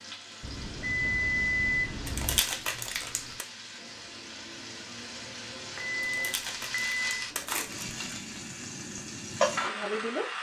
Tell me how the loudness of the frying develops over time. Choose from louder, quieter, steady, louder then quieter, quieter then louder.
louder.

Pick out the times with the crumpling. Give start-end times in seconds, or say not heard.
2.0-3.5, 6.0-8.2.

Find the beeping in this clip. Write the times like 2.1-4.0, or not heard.
0.4-2.4, 5.8-7.2.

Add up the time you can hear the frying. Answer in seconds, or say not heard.
10 s.